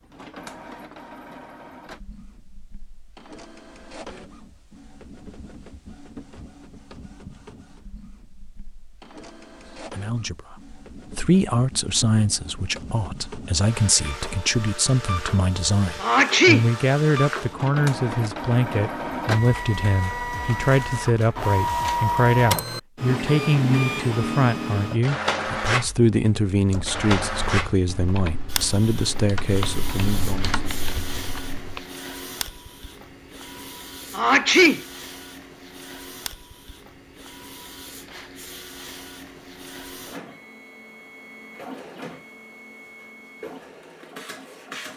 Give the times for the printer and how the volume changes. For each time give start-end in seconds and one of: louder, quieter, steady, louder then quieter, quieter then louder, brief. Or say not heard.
0.0-44.9 louder then quieter.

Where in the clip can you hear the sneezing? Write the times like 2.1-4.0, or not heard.
16.0-16.6, 34.1-34.8.